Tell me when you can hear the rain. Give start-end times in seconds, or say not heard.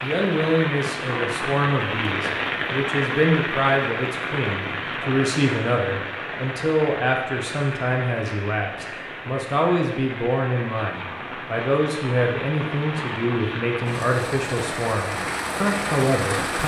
0.0-16.6.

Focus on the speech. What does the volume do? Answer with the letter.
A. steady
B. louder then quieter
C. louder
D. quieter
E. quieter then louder
A.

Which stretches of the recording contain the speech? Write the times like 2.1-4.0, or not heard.
0.0-16.6.